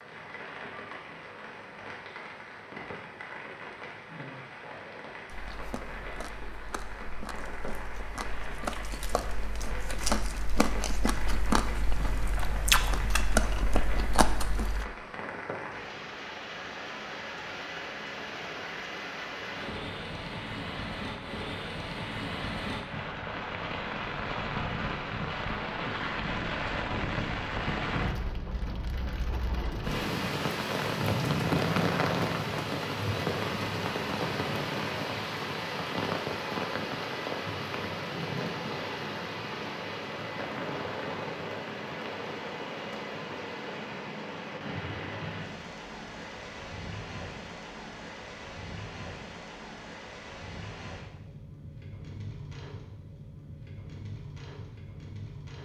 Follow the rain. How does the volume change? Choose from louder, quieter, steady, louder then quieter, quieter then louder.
louder then quieter.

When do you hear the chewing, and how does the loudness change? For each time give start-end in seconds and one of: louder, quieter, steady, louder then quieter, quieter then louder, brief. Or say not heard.
5.3-14.8 louder.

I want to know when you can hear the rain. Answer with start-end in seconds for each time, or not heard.
0.0-55.6.